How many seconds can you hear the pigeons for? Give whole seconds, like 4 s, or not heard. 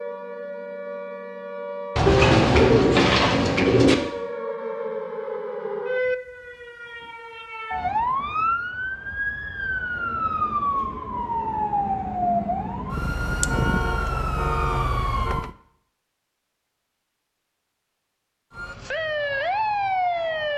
2 s.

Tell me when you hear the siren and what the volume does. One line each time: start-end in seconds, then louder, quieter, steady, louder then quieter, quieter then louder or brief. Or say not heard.
0.0-15.5 louder
18.6-20.5 brief.